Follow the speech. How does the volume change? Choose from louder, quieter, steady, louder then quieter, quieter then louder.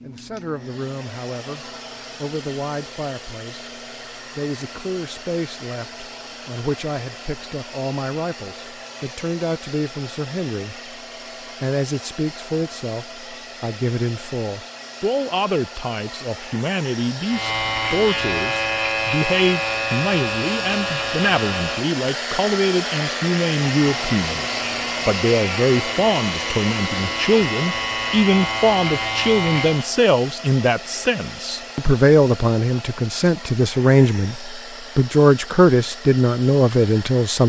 louder.